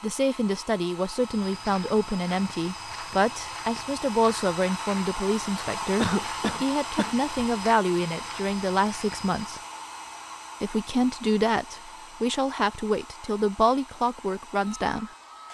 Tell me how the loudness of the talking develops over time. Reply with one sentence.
The volume of the talking stays about the same.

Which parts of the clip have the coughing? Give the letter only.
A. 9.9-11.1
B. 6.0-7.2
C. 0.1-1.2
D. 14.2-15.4
B.